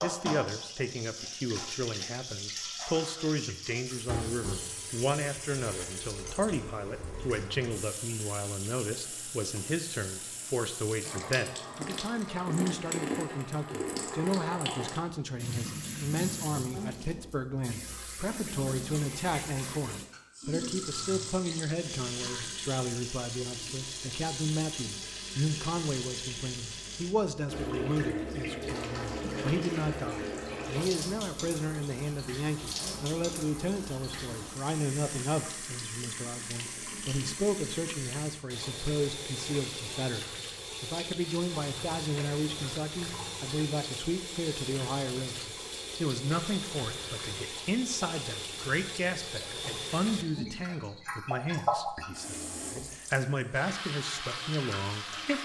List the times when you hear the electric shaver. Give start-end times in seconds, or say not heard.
not heard.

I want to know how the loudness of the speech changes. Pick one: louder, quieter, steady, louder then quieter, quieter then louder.
steady.